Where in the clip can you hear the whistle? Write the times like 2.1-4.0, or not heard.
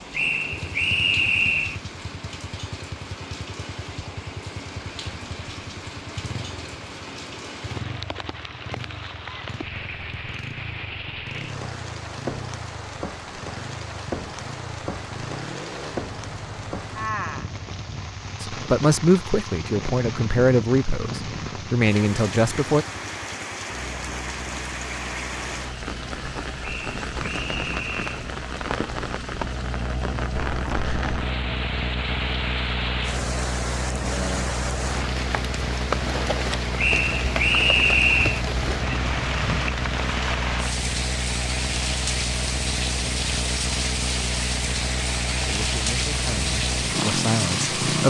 0.1-1.8, 26.6-28.2, 36.8-38.5.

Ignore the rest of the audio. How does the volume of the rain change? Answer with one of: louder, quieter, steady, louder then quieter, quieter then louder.
louder.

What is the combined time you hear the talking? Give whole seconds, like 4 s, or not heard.
7 s.